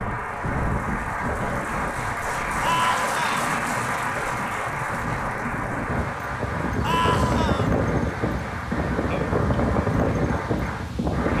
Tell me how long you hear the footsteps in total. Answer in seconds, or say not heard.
not heard.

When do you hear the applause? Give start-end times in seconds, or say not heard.
0.0-11.3.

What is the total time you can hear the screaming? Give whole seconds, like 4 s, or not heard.
2 s.